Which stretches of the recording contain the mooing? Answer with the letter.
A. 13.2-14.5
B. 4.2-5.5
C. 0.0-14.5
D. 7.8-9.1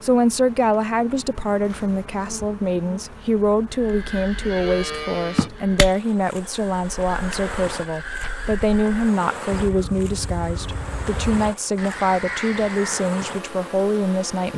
B.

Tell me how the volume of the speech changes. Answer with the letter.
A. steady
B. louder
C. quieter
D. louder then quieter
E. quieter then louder
A.